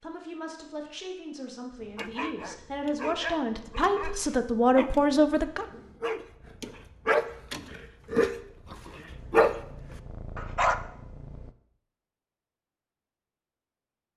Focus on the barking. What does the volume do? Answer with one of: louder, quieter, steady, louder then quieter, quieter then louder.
louder.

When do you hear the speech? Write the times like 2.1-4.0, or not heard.
0.0-5.7.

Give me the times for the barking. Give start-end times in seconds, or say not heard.
1.9-10.8.